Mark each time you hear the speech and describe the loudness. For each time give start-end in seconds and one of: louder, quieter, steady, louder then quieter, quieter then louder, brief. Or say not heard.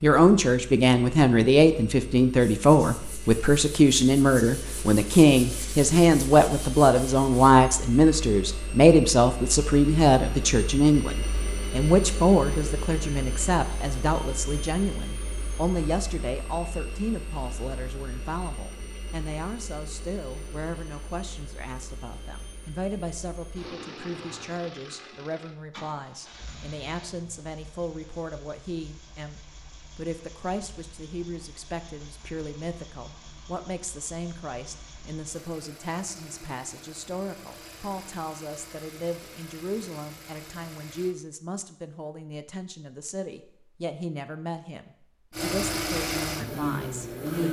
0.0-47.4 quieter.